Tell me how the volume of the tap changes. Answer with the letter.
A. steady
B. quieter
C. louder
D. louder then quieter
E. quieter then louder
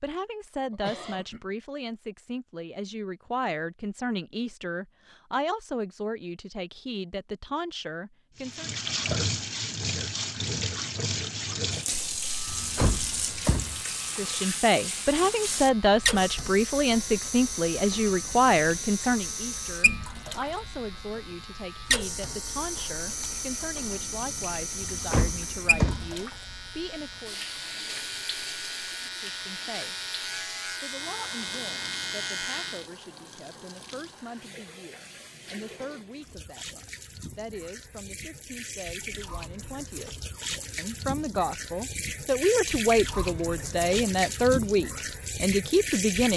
E.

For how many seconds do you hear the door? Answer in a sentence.
The door can be heard for 3 seconds in total.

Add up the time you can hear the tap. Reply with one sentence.
The tap can be heard for 38 seconds in total.